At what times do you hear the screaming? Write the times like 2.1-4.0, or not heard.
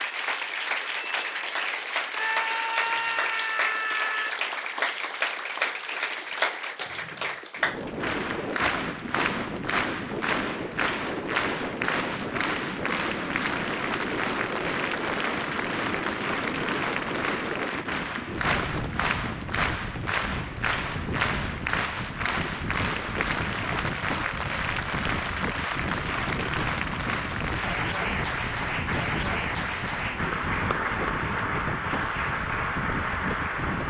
2.1-4.3.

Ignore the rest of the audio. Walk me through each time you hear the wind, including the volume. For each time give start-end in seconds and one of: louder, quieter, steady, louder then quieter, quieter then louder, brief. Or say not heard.
7.5-33.8 steady.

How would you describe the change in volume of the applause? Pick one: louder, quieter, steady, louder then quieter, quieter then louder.
steady.